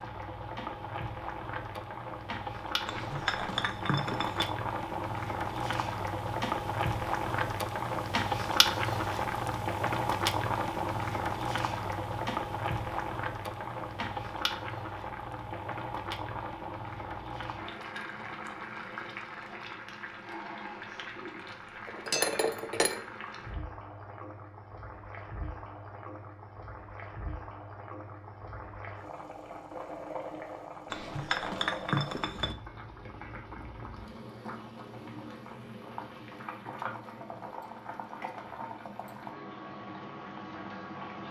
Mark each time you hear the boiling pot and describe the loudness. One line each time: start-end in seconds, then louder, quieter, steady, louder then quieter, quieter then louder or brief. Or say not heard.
0.0-41.2 quieter.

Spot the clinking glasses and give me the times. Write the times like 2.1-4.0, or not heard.
2.9-4.5, 21.9-23.1, 30.9-32.5.